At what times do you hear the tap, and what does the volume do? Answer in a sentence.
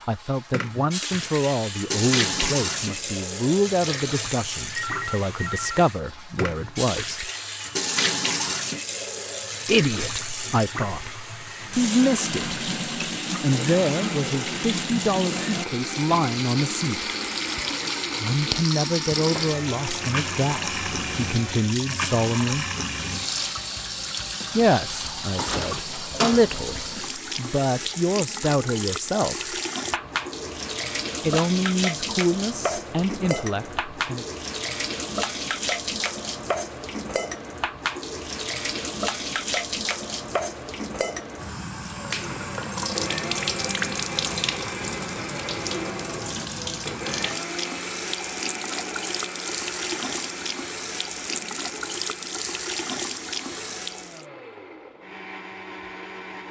The tap can be heard from 0.0 to 54.2 s, at a steady volume.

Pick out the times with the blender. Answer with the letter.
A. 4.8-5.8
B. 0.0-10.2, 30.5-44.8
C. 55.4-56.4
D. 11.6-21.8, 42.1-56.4
D.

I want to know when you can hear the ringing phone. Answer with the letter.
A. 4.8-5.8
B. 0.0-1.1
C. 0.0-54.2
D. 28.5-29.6
A.